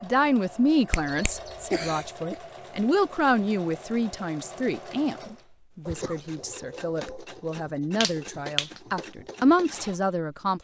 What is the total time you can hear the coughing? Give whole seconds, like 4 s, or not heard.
2 s.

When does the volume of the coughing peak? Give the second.
2 s.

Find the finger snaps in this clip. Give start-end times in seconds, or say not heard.
0.9-1.4, 8.0-8.8.